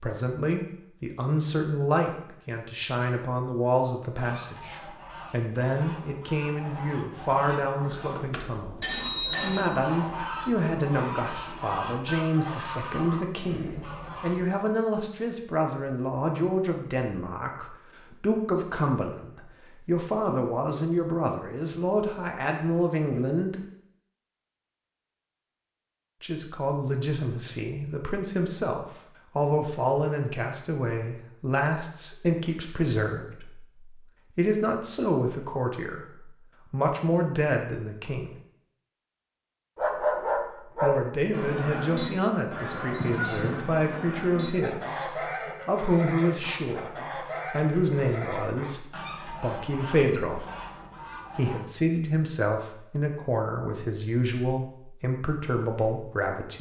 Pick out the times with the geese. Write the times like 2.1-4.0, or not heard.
4.2-14.5, 41.3-51.6.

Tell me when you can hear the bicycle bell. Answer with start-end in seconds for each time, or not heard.
8.2-9.7.